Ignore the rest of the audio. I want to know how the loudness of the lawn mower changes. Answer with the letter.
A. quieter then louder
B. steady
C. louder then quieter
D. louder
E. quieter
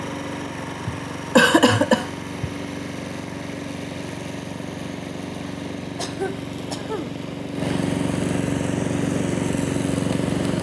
D.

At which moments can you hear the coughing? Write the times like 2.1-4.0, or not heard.
0.8-2.5, 6.0-7.2.